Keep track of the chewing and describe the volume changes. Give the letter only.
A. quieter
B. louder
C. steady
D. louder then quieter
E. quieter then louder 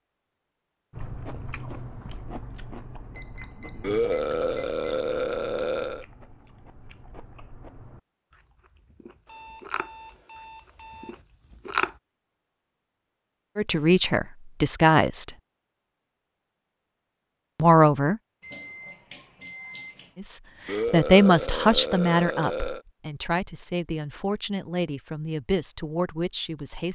E.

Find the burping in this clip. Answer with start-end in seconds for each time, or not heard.
3.8-6.0, 20.6-22.8.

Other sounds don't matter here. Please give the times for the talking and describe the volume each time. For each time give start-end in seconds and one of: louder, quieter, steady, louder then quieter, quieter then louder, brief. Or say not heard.
13.6-15.3 brief
17.6-18.2 brief
20.1-26.8 quieter.